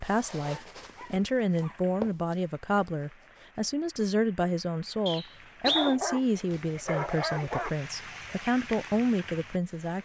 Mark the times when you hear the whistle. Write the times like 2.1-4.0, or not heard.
5.0-6.0.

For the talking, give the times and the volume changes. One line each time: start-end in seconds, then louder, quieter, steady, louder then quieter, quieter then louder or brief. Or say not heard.
0.0-10.0 steady.